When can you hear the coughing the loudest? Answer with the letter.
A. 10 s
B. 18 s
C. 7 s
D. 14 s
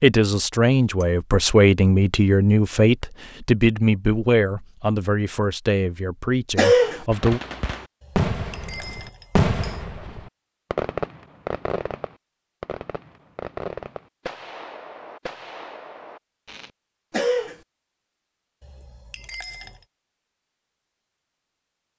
C.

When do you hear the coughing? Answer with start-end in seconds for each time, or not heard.
6.5-7.0, 17.1-17.6.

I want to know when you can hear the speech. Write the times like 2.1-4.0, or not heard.
0.0-7.4.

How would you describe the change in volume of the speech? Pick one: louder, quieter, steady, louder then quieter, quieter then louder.
quieter.